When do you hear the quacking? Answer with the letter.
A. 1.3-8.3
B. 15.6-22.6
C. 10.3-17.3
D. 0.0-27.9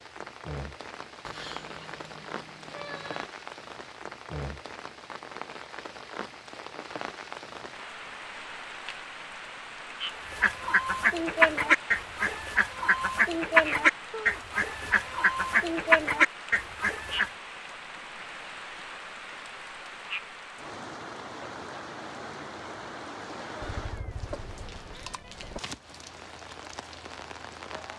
C.